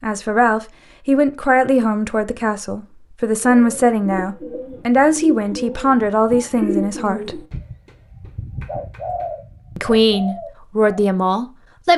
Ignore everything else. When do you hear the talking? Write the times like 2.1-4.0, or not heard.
0.0-7.5, 9.8-11.9.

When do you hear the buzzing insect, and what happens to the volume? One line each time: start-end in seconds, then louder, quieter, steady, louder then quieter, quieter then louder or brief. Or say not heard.
not heard.